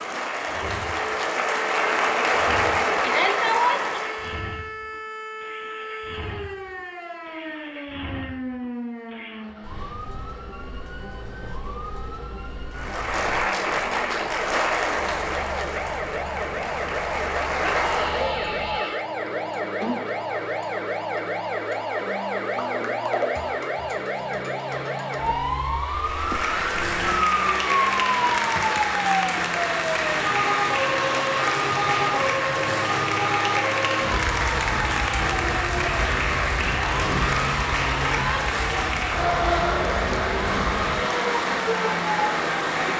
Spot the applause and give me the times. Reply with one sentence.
You can hear the applause from 0.0 to 4.5 s, from 12.8 to 18.4 s and from 26.0 to 42.9 s.